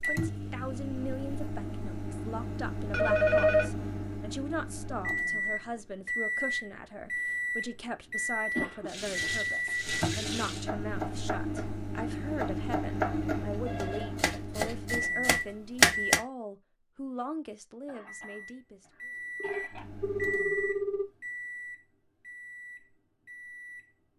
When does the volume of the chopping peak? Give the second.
16 s.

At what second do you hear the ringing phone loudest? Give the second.
3 s.